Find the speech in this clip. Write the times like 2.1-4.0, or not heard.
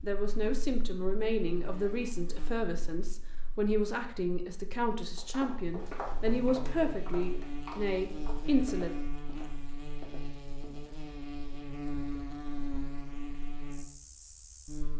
0.0-8.9.